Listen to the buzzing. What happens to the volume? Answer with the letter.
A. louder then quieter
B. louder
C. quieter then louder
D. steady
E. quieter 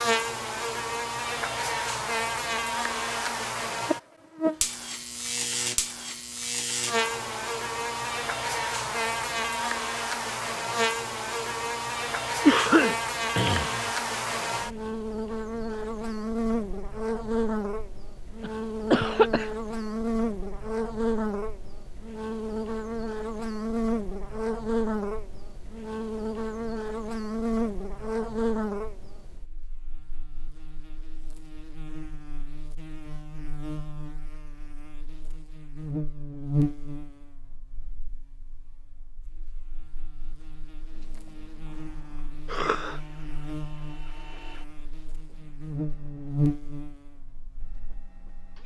E.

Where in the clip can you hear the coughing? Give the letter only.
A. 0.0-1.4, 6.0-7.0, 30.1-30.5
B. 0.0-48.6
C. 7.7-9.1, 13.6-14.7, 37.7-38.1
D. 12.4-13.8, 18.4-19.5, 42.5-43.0
D.